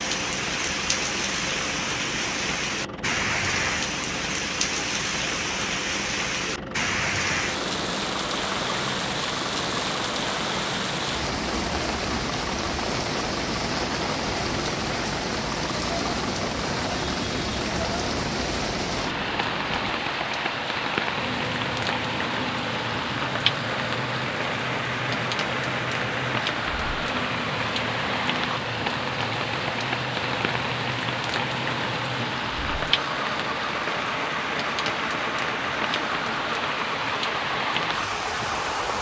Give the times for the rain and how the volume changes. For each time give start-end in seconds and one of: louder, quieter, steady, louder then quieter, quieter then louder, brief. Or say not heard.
0.0-38.9 steady.